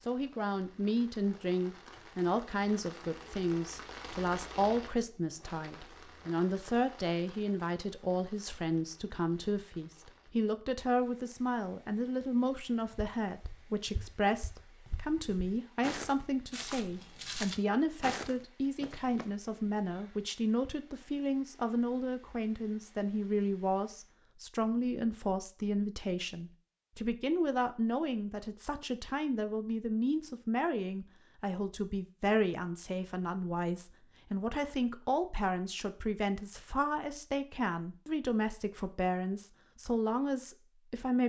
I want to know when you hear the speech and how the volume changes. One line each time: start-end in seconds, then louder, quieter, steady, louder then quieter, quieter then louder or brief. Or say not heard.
0.1-41.2 steady.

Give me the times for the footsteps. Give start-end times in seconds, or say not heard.
12.9-19.4.